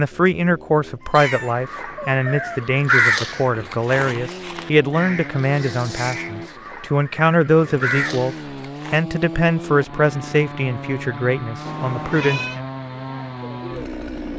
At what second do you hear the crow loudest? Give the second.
3 s.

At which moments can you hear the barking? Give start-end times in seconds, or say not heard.
not heard.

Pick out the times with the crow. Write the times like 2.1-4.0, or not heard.
1.1-9.1.